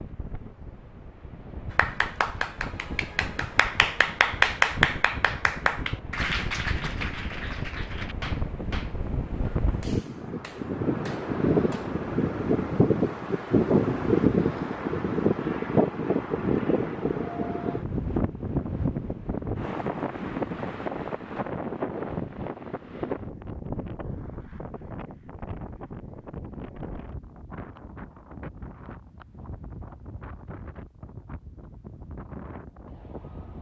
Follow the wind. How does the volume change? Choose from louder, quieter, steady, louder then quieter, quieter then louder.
louder then quieter.